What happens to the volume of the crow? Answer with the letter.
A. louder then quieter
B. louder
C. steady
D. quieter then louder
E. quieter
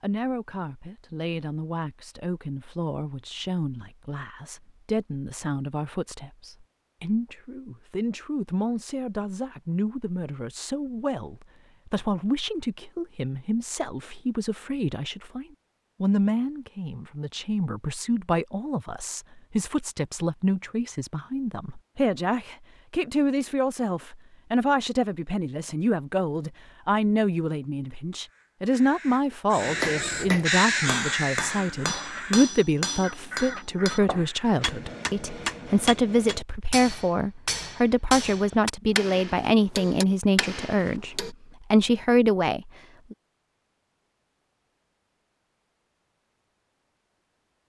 A.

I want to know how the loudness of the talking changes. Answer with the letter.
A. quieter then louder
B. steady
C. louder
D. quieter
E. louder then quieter
C.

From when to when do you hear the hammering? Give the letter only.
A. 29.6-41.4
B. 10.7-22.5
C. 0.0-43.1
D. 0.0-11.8
A.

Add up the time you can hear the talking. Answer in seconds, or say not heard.
43 s.